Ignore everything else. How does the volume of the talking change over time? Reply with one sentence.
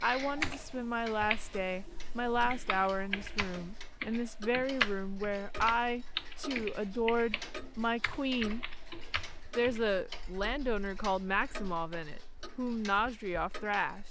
The loudness of the talking stays about the same.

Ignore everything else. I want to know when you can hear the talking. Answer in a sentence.
The talking can be heard from 0.0 to 8.6 s and from 9.6 to 14.0 s.